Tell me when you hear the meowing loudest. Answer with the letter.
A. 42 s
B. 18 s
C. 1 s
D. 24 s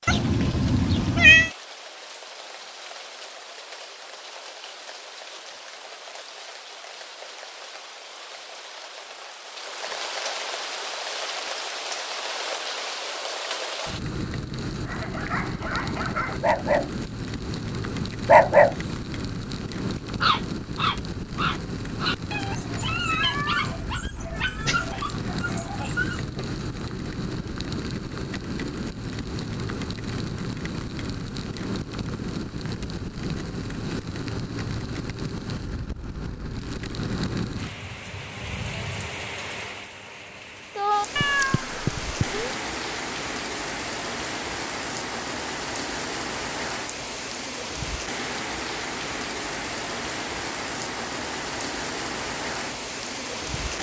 C.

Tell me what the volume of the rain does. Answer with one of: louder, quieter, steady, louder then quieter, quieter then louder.
louder.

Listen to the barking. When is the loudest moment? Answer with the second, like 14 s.
18 s.